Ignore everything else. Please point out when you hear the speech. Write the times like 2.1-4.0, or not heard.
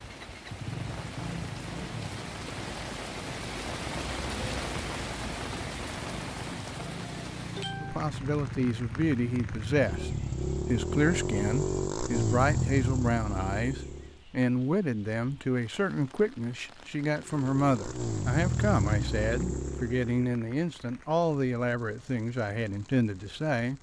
7.8-23.7.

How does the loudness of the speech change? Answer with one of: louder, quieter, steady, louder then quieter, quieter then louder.
steady.